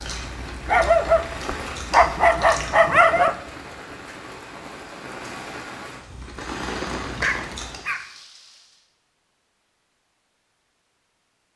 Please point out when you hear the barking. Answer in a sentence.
The barking can be heard from 0.7 to 3.4 s and from 6.1 to 8.1 s.